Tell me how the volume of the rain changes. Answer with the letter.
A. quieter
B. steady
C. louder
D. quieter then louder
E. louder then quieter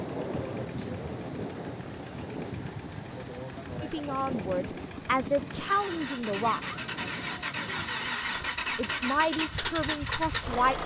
A.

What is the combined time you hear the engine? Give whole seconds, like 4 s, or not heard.
11 s.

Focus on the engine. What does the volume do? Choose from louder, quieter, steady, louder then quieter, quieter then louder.
louder.